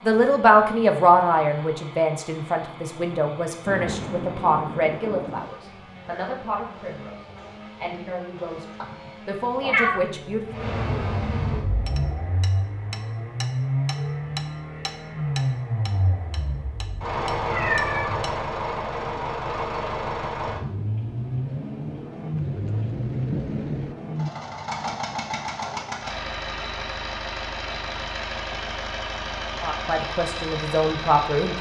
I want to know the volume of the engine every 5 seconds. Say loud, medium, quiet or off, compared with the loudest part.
quiet, quiet, loud, loud, loud, loud, loud.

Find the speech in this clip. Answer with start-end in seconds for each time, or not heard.
0.0-10.7, 29.6-31.5.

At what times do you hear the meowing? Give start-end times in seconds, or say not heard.
8.8-9.9, 17.4-18.4.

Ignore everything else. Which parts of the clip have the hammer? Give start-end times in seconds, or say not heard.
11.8-18.4.